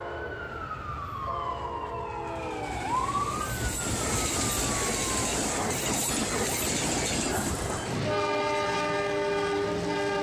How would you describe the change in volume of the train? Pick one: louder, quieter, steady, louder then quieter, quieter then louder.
louder.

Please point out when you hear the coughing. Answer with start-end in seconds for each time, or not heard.
not heard.